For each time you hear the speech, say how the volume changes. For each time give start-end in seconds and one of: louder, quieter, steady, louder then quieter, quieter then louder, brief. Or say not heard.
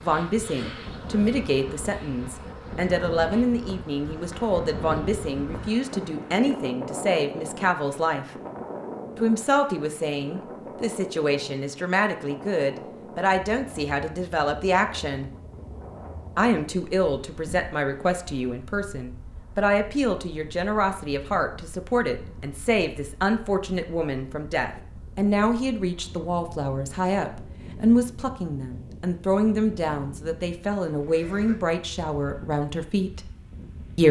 0.0-8.2 steady
9.2-15.3 steady
16.4-33.3 steady.